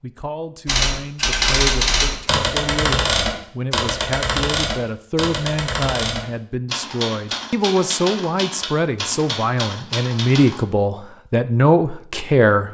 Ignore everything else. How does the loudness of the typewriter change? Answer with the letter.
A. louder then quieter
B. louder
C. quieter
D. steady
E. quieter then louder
C.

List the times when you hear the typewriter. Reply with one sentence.
The typewriter can be heard from 0.7 to 10.6 s.